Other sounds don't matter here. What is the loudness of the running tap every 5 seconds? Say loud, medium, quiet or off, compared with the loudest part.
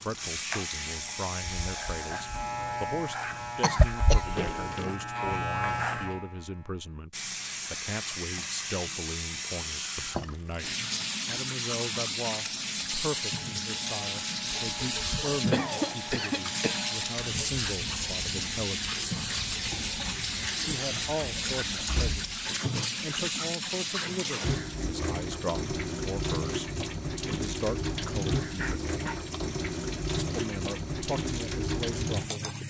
medium, loud, loud, loud, loud, loud, loud.